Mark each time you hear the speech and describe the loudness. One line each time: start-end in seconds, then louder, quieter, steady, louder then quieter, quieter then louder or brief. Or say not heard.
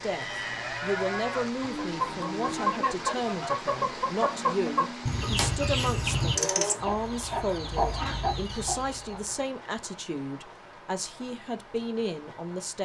0.0-12.8 steady.